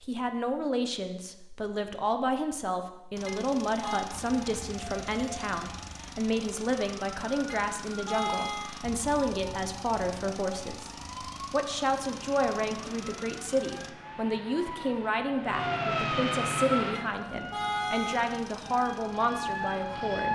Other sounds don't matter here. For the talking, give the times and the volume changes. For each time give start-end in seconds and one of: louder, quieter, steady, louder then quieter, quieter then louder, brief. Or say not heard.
0.0-20.2 steady.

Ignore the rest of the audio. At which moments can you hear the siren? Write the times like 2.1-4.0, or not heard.
4.1-20.2.